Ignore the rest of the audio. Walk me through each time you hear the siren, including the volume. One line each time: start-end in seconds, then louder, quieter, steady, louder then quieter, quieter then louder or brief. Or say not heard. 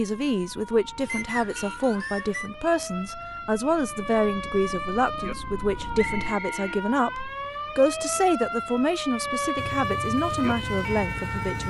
0.0-11.6 louder.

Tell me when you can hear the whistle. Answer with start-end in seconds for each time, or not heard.
1.1-2.5, 6.0-6.7.